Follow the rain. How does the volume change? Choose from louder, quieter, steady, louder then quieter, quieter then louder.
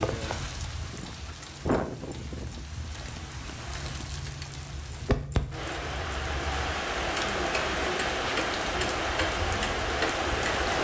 quieter then louder.